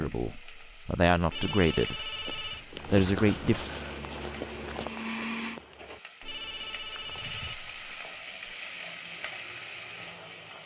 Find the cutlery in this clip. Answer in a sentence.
You can't hear the cutlery here.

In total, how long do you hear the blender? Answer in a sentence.
The blender can be heard for 2 seconds in total.